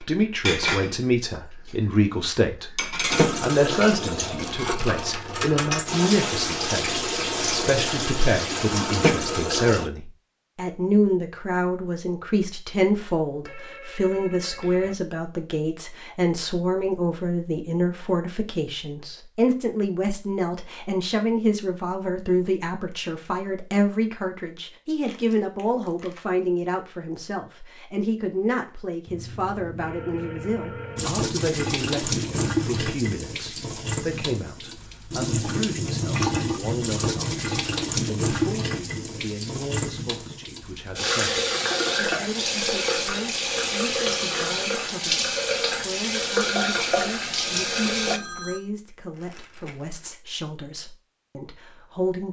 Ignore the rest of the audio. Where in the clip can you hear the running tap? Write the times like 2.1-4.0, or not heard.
3.0-9.9, 30.9-48.2.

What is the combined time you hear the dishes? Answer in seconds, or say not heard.
5 s.